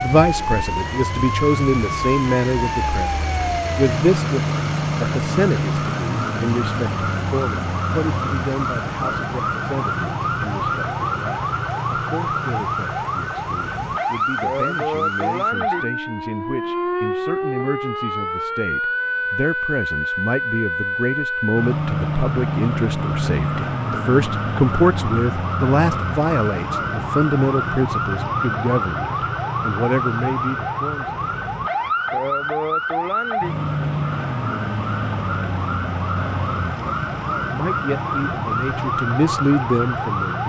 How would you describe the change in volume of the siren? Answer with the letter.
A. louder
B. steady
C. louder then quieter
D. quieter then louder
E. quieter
B.